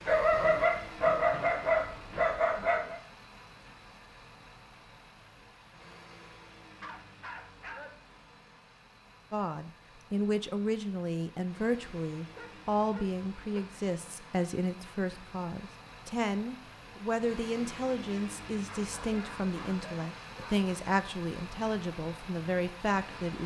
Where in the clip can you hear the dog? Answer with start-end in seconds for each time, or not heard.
0.1-3.0, 6.8-7.9, 12.3-13.6, 18.6-20.7.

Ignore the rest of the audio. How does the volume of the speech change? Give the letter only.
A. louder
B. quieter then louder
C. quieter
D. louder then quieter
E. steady
E.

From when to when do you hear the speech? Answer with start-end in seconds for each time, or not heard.
9.3-23.4.